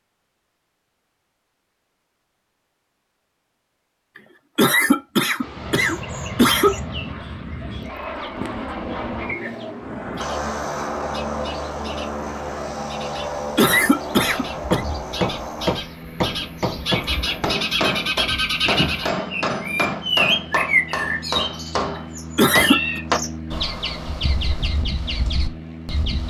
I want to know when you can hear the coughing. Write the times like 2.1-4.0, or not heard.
4.5-6.8, 13.6-14.8, 22.4-23.0.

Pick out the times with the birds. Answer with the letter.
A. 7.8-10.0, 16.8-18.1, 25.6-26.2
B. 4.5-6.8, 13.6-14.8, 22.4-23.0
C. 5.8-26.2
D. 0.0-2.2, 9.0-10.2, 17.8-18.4
C.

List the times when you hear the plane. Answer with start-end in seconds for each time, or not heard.
5.4-26.2.